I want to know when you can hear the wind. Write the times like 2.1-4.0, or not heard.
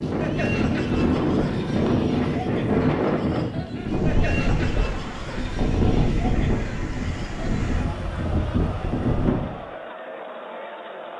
0.0-9.6.